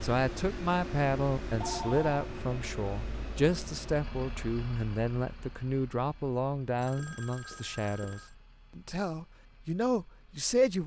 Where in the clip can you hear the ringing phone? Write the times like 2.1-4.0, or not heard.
1.6-2.1, 6.7-8.3.